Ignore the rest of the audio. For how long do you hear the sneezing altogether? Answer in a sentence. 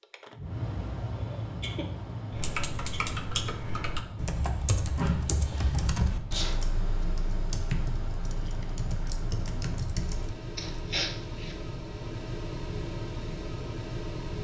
You can hear the sneezing for 4 seconds altogether.